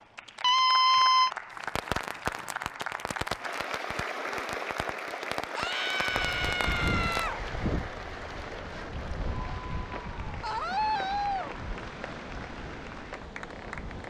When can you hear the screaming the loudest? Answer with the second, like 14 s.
1 s.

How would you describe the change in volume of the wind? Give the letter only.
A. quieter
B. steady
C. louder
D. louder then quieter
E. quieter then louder
A.